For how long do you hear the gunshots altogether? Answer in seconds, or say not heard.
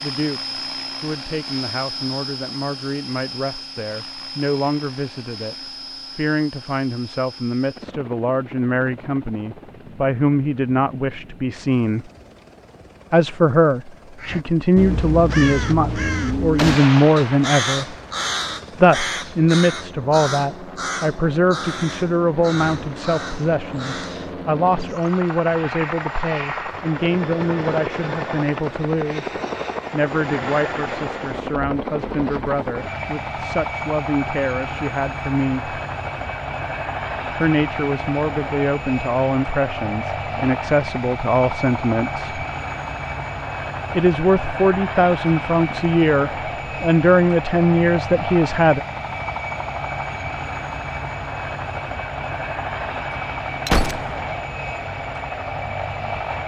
2 s.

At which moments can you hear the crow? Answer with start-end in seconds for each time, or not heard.
14.2-25.1.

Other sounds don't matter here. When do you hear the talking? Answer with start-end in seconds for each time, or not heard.
0.0-12.1, 13.1-17.9, 18.8-35.8, 37.4-42.5, 43.9-48.8.